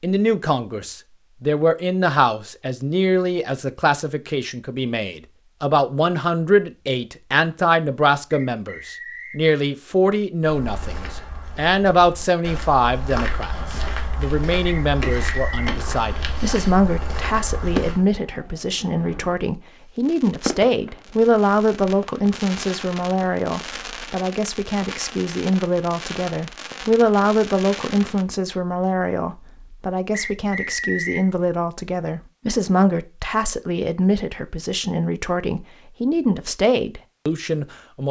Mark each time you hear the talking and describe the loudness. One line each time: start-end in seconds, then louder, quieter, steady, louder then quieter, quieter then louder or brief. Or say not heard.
0.0-38.0 steady.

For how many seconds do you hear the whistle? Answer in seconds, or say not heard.
3 s.